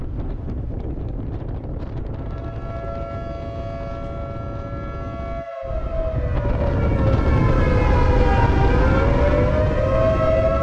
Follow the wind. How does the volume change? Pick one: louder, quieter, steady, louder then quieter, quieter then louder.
louder.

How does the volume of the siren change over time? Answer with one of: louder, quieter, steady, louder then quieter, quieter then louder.
louder.